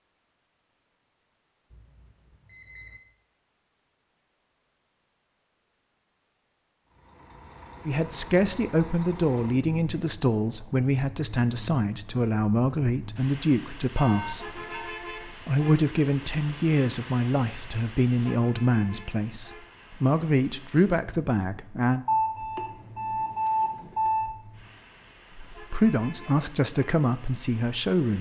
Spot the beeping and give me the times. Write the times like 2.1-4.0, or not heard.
1.7-3.0, 13.9-14.9, 22.1-24.3.